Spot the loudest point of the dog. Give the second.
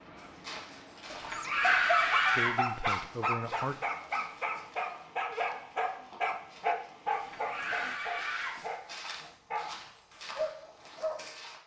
2 s.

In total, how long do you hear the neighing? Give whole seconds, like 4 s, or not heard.
3 s.